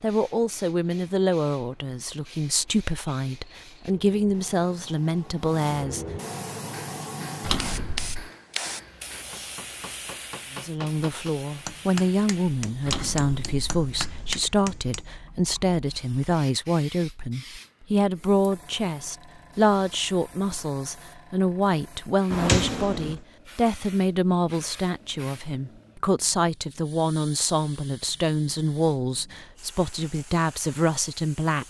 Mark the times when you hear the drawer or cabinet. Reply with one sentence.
You can hear the drawer or cabinet from 7.4 to 8.3 s, from 12.8 to 14.4 s and from 22.3 to 23.2 s.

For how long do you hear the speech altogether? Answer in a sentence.
You can hear the speech for 27 seconds altogether.